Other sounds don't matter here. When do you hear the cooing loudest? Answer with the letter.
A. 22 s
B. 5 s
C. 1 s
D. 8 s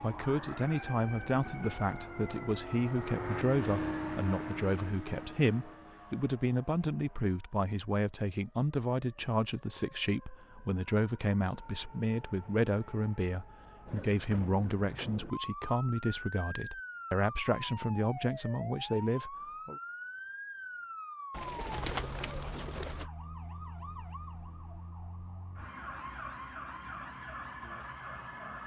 A.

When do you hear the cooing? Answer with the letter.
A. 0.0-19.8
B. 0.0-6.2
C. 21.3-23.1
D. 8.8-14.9
C.